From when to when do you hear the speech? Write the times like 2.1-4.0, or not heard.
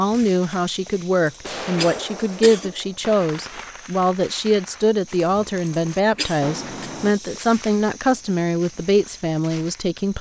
0.0-10.1.